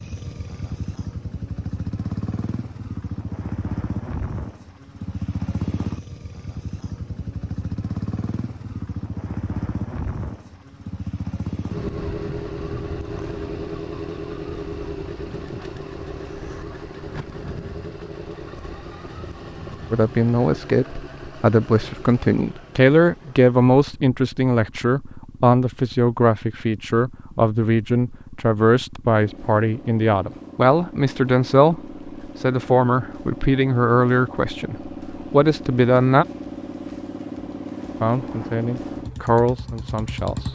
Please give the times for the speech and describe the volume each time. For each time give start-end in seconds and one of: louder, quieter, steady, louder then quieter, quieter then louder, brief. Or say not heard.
19.9-36.2 steady
38.0-40.5 brief.